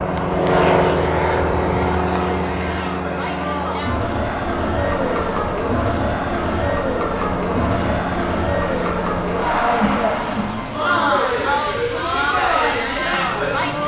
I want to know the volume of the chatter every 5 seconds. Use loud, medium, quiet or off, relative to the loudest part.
medium, loud, loud.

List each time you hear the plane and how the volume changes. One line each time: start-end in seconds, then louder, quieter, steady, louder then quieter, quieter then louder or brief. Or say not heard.
0.0-13.8 quieter.